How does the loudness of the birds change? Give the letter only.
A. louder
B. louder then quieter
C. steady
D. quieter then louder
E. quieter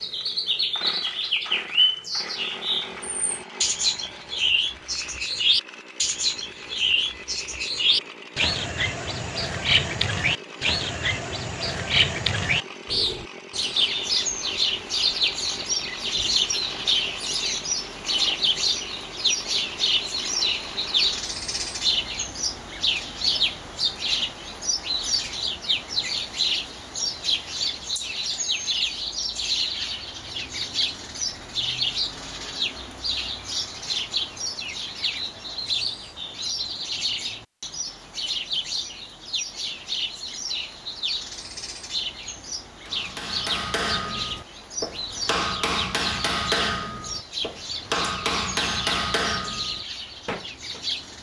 E.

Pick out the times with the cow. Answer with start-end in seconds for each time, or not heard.
not heard.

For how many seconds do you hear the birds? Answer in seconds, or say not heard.
51 s.